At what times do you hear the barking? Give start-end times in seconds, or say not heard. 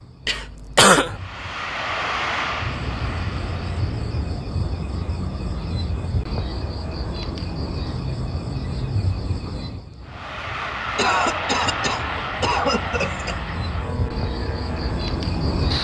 not heard.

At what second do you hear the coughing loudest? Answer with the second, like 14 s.
1 s.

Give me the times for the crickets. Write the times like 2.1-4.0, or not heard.
0.0-15.7.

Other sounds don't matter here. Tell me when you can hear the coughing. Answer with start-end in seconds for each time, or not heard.
0.2-1.2, 10.9-13.3.